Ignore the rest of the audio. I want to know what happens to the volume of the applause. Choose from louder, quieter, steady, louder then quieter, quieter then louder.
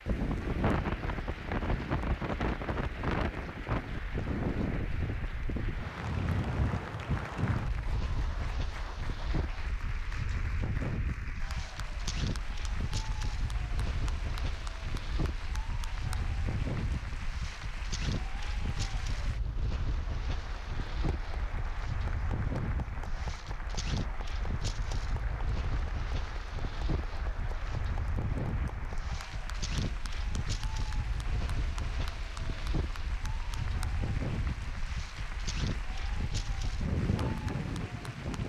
steady.